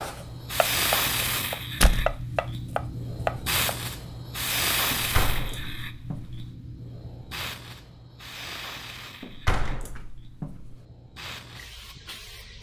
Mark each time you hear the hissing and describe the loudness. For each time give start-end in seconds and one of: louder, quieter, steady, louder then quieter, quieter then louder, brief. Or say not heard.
0.0-12.5 quieter.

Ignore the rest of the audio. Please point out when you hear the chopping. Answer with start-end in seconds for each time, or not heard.
0.0-3.8.